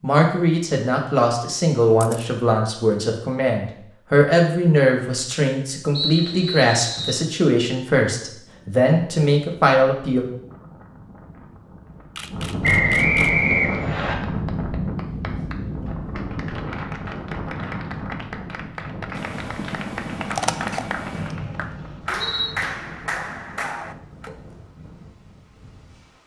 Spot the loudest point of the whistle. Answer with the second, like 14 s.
13 s.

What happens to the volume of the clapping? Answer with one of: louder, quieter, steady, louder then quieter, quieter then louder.
louder.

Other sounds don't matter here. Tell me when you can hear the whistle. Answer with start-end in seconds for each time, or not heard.
5.9-7.2, 12.6-14.2, 21.1-22.4.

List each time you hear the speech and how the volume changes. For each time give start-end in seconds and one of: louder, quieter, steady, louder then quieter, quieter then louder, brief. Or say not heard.
0.0-10.2 steady.